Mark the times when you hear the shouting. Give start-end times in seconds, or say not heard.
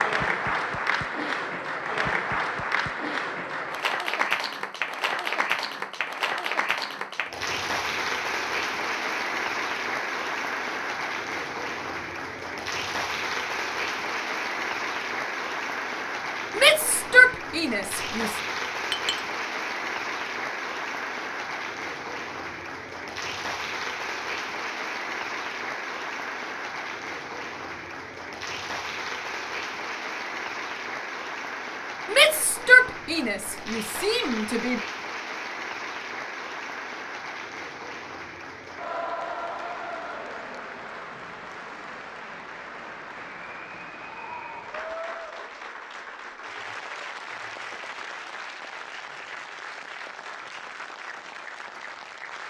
16.6-18.4, 32.1-34.8.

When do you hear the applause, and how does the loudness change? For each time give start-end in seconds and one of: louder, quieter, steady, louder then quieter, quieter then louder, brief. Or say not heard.
0.0-52.4 quieter.